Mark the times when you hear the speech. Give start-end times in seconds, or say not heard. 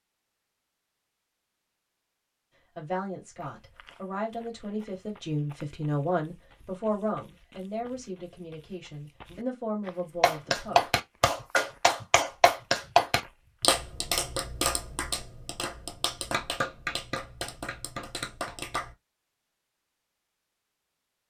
2.8-10.9.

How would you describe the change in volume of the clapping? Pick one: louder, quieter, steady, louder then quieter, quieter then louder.
quieter.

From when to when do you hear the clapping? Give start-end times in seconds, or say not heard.
10.2-18.9.